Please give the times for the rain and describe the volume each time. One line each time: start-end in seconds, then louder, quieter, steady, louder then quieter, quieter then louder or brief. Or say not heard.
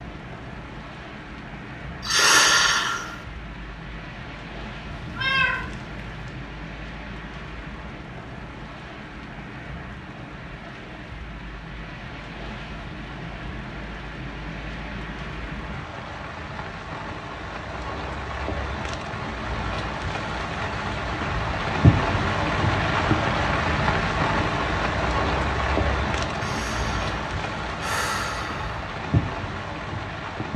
0.0-30.5 louder.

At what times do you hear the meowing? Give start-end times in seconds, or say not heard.
4.9-6.3.